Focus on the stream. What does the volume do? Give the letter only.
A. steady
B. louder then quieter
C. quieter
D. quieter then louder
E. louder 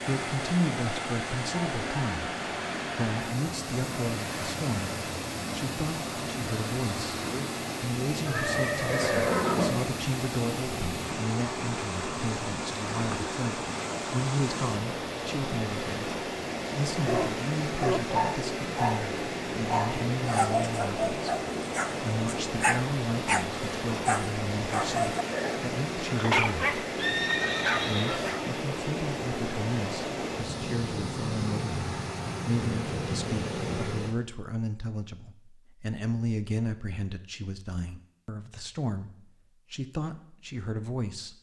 A.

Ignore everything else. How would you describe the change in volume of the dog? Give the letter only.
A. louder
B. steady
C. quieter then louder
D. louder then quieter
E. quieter
B.